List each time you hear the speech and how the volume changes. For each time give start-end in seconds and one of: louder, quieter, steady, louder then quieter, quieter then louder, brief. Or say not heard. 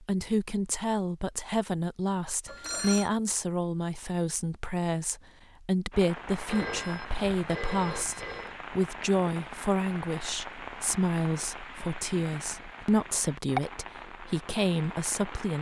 0.0-15.5 steady.